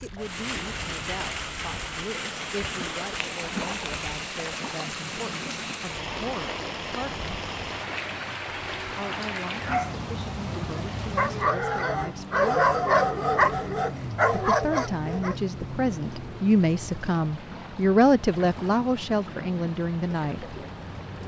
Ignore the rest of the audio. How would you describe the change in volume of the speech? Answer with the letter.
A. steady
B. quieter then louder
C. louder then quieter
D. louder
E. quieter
D.